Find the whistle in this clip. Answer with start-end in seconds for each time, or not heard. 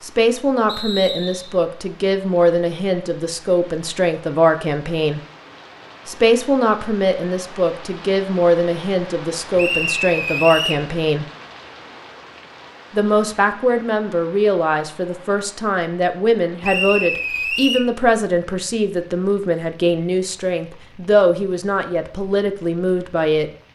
0.7-1.6, 9.6-10.8, 16.6-17.8.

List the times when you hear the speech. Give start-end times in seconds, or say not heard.
0.0-5.2, 6.0-11.2, 12.9-23.5.